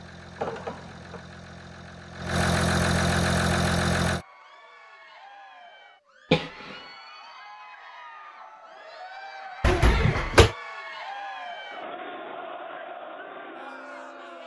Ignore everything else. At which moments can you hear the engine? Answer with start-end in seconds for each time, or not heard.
0.0-4.2.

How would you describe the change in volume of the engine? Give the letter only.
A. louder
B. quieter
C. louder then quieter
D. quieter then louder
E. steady
A.